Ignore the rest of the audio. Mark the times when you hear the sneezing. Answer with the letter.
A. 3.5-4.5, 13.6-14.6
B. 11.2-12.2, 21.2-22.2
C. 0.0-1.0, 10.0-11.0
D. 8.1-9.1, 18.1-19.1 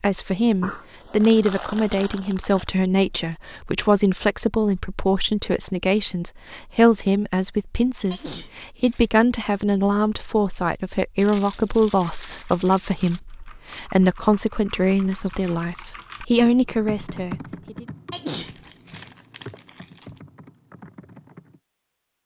D.